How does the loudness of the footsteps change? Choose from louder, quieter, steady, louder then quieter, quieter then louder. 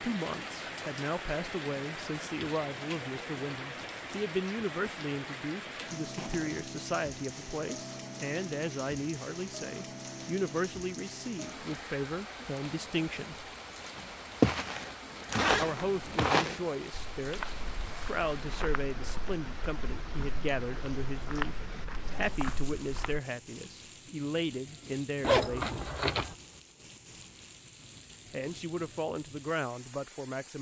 quieter then louder.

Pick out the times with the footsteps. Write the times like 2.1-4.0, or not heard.
13.9-23.2.